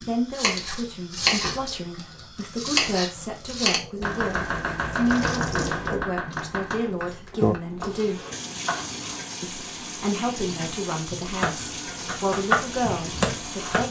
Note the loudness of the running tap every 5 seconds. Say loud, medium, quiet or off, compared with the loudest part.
quiet, loud, loud.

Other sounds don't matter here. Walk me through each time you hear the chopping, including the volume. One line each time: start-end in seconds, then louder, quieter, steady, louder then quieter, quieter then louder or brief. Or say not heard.
0.0-9.2 quieter
11.2-13.8 brief.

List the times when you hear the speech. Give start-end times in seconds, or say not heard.
0.1-8.2, 9.4-13.8.